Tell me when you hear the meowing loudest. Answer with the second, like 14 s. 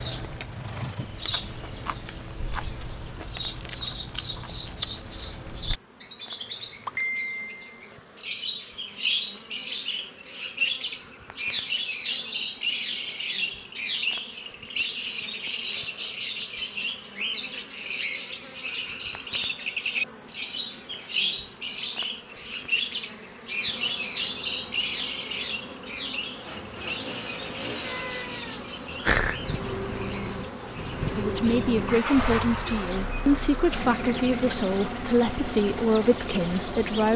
29 s.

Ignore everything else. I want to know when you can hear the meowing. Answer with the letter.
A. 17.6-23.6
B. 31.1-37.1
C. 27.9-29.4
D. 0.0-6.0
C.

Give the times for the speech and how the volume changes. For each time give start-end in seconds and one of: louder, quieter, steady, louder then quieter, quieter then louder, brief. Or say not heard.
31.1-37.1 steady.